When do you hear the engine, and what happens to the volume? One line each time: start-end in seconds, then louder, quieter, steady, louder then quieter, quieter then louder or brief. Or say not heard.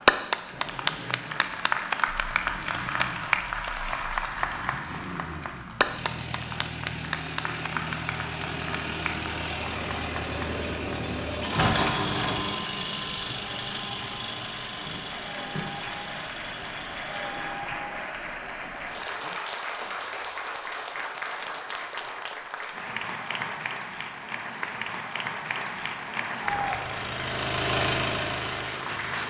0.0-17.8 louder then quieter
26.4-29.2 brief.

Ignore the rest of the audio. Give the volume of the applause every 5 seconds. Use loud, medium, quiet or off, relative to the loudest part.
loud, medium, quiet, medium, medium, medium.